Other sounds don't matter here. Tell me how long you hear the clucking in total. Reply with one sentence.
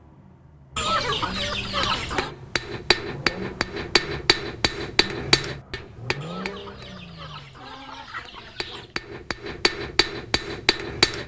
The clucking can be heard for 4 seconds in total.